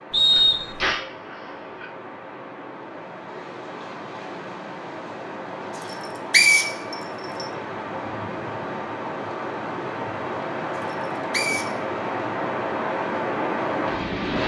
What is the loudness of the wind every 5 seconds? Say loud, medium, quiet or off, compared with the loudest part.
medium, medium, loud.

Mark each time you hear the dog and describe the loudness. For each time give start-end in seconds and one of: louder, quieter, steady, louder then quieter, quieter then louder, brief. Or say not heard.
not heard.